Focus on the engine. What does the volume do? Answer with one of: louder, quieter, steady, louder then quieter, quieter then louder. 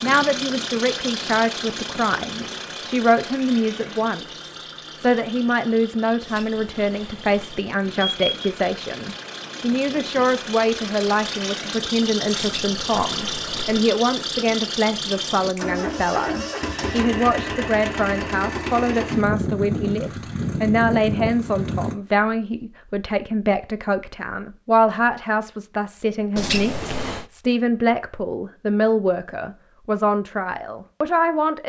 quieter then louder.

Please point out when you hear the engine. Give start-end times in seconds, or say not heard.
0.0-21.9.